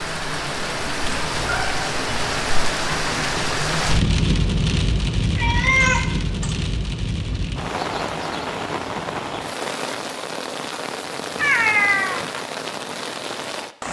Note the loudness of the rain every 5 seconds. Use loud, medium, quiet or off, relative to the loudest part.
loud, loud, medium.